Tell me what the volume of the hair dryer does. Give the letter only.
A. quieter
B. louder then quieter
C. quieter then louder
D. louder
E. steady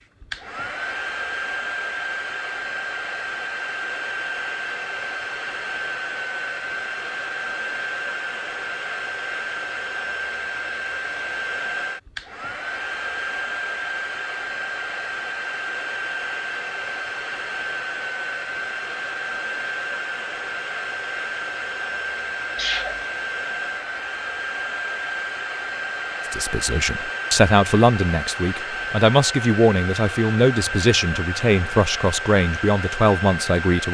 E.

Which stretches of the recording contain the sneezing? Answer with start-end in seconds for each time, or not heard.
22.6-23.1.